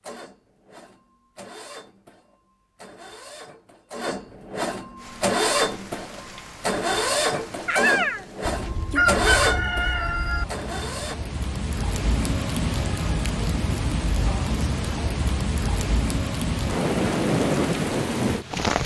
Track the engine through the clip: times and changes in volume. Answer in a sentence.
You can hear the engine from 0.0 to 11.2 s, getting louder.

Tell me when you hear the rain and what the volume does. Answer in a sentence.
The rain can be heard from 5.0 to 18.8 s, getting louder.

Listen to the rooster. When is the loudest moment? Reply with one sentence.
The volume of the rooster peaks at 9 seconds.